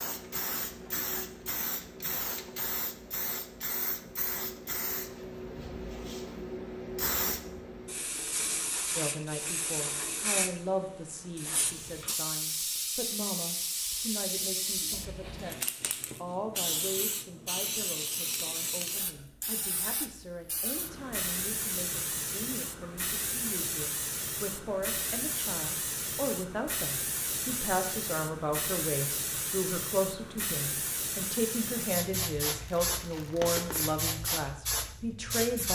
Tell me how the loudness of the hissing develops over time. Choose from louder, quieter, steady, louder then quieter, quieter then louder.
steady.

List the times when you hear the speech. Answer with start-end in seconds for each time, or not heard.
8.9-35.7.